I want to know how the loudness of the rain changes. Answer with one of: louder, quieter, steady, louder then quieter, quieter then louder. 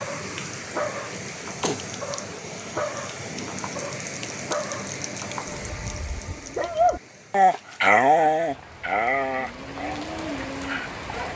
quieter then louder.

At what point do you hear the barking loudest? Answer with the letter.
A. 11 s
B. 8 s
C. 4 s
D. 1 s
B.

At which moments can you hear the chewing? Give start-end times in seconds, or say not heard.
not heard.